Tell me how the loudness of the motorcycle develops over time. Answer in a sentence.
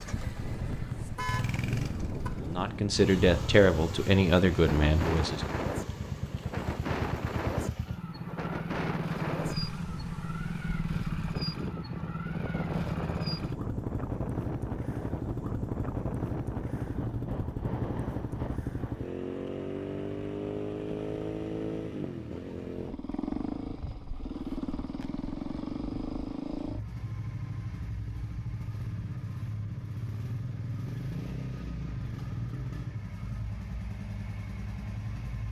The loudness of the motorcycle stays about the same.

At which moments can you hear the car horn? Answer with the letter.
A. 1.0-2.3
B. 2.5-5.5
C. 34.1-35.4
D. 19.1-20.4
A.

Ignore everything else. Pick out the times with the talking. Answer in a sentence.
The talking can be heard from 2.5 to 5.5 s.